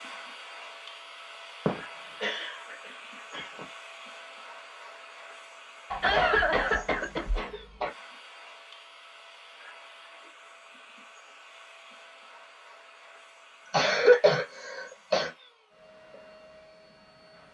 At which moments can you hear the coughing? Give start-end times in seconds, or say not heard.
1.6-3.6, 5.9-7.9, 13.7-15.3.